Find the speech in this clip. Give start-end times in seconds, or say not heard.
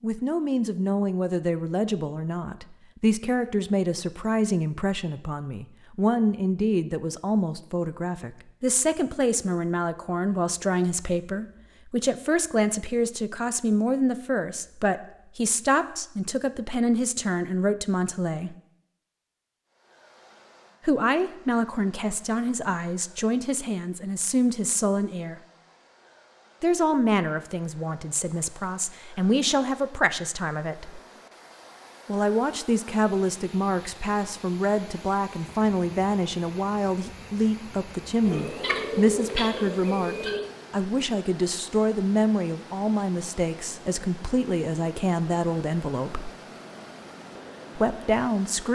0.0-18.6, 20.9-25.4, 26.6-31.0, 32.0-46.3, 47.8-48.6.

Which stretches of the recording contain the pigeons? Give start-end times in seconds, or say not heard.
38.2-40.5.